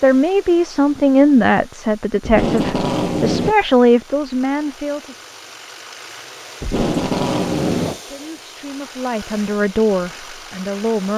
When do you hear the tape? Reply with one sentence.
You can hear the tape from 2.2 to 3.5 s and from 6.6 to 8.0 s.